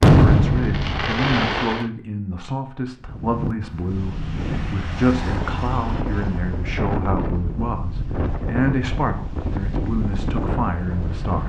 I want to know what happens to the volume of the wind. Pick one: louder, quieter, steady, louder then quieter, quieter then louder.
steady.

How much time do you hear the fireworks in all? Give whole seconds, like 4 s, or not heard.
2 s.